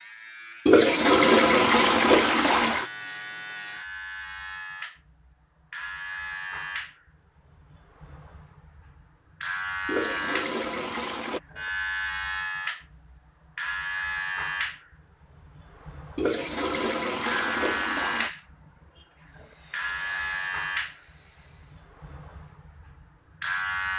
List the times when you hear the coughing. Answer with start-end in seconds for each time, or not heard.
not heard.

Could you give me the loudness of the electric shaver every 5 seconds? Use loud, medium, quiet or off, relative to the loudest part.
medium, medium, loud, loud, loud.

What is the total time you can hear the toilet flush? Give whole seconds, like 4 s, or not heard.
6 s.